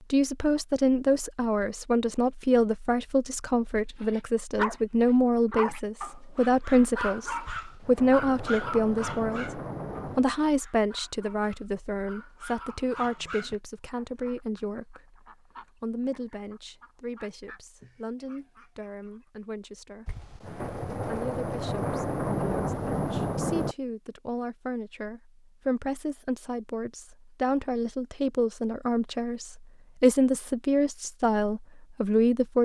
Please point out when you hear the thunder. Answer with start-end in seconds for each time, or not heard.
7.5-10.3, 20.1-23.8.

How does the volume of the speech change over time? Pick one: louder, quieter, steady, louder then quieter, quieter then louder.
quieter then louder.